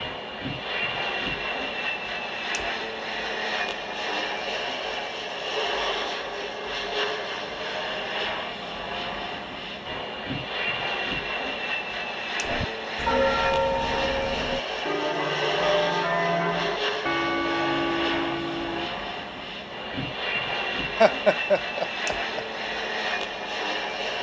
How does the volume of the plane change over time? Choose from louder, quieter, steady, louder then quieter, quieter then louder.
steady.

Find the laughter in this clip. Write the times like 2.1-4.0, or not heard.
21.0-22.4.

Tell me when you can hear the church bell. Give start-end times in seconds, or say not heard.
12.4-18.9.